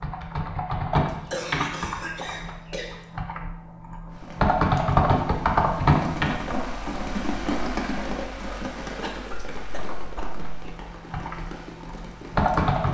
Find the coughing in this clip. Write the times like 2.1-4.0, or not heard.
1.1-3.0, 9.0-10.4.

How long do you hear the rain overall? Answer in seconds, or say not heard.
9 s.